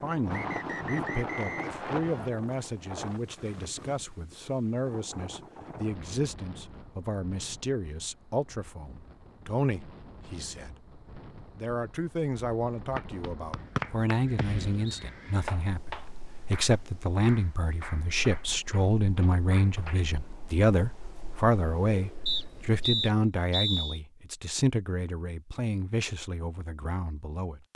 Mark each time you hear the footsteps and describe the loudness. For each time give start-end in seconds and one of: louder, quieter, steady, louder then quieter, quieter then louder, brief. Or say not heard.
not heard.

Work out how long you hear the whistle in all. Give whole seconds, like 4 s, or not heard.
5 s.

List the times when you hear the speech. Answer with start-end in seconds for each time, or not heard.
0.0-27.7.